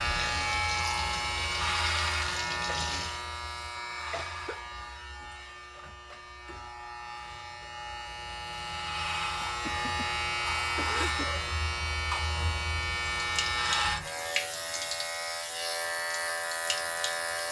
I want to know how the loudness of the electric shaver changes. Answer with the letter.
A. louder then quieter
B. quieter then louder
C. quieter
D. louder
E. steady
B.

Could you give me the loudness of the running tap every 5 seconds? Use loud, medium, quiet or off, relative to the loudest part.
loud, off, loud, medium.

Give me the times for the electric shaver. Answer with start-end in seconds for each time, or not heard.
0.0-17.4.